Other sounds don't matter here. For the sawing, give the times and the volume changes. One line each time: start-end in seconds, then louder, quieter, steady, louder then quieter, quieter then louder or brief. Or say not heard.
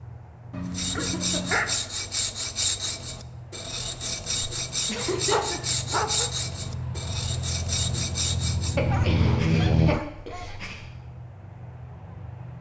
0.7-8.8 steady.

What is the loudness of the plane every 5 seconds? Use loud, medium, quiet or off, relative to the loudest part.
quiet, loud, quiet.